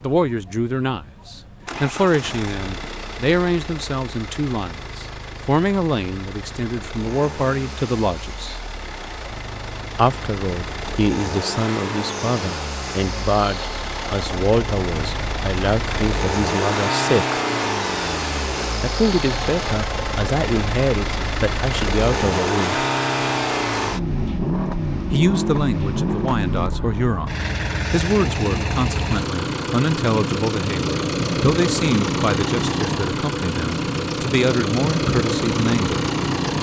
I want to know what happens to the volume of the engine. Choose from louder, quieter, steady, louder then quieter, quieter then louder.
louder.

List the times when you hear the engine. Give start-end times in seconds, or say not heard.
0.0-36.5.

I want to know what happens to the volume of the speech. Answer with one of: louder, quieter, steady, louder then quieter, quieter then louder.
steady.